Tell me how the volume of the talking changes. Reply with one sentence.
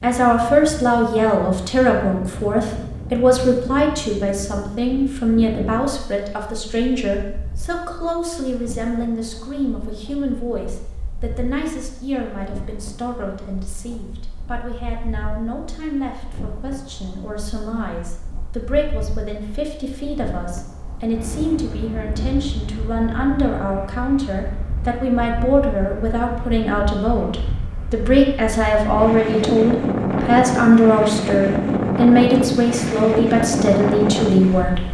The volume of the talking goes down, then up.